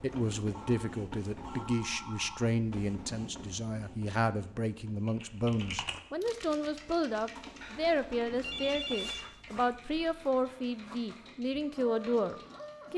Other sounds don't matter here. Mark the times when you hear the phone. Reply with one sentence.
The phone can be heard from 0.5 to 2.5 s and from 7.6 to 9.2 s.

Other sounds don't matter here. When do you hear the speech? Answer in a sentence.
You can hear the speech from 0.0 to 12.9 s.